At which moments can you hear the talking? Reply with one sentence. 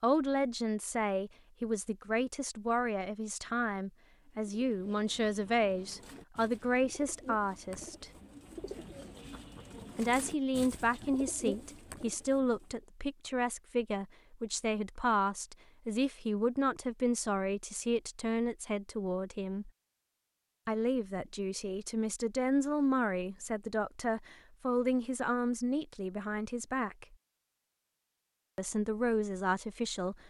You can hear the talking from 0.0 to 8.1 s, from 9.9 to 19.7 s, from 20.6 to 27.1 s and from 28.6 to 30.2 s.